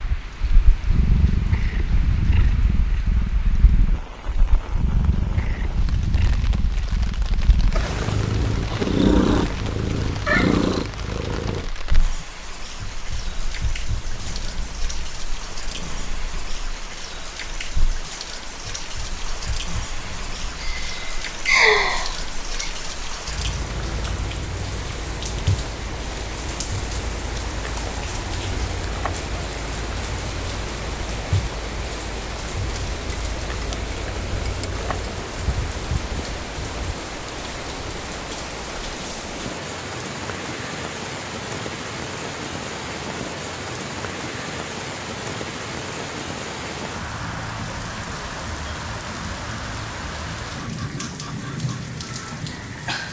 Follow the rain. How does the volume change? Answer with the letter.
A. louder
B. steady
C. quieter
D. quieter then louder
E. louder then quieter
A.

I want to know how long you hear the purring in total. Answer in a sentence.
You can hear the purring for 37 seconds altogether.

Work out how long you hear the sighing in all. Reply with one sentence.
You can hear the sighing for 2 seconds altogether.